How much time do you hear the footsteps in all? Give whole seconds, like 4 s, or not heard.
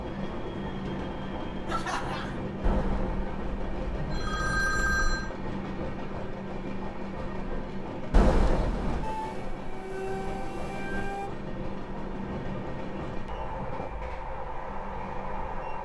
not heard.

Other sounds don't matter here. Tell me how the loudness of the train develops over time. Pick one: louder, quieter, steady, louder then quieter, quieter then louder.
steady.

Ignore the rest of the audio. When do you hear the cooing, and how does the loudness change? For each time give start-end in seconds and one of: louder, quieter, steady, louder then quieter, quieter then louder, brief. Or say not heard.
not heard.